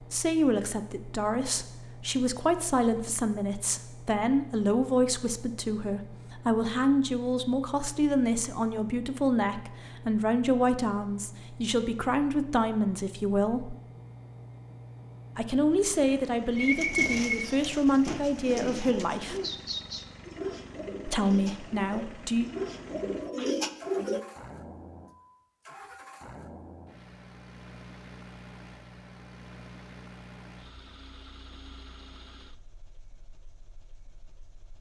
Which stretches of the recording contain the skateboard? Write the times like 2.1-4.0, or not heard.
not heard.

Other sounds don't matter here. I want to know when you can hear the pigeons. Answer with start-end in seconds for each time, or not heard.
16.6-24.2.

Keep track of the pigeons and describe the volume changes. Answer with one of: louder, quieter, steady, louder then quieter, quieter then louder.
quieter then louder.